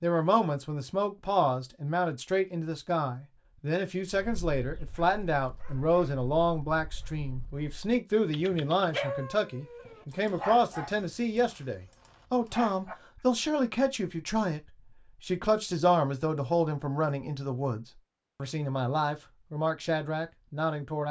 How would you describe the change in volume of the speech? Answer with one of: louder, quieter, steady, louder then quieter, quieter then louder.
steady.